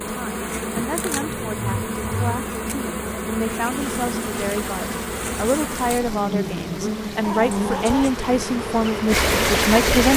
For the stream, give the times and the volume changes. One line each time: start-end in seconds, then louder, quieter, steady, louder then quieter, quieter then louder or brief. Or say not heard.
4.0-10.1 louder.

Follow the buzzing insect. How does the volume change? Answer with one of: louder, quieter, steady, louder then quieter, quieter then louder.
steady.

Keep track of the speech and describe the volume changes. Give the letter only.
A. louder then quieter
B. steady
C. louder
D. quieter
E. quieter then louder
C.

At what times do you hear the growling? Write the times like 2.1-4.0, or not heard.
1.1-2.4, 7.2-8.2.